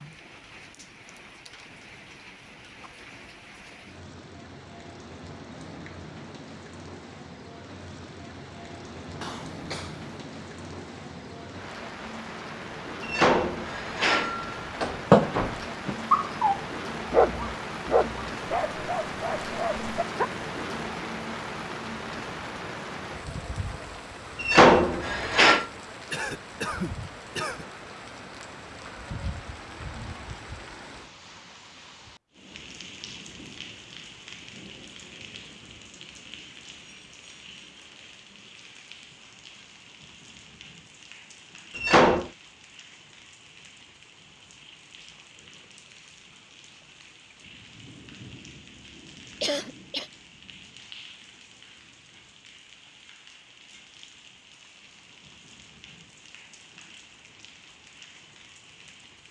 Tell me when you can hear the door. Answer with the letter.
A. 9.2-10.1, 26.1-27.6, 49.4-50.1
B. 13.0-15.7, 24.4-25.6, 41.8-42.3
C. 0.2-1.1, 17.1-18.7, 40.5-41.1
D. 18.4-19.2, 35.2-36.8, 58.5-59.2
B.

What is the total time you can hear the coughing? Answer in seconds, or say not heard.
3 s.